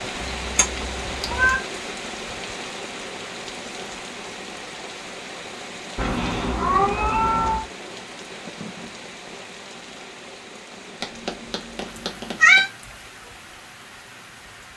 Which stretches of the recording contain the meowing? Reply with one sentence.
You can hear the meowing from 0.2 to 1.6 s, from 6.0 to 7.7 s and from 11.0 to 12.7 s.